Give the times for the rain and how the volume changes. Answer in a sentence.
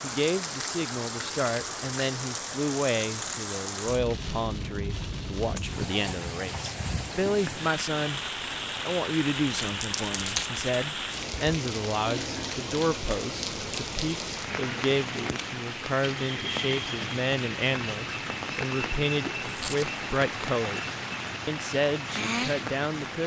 You can hear the rain from 0.0 to 23.2 s, at a steady volume.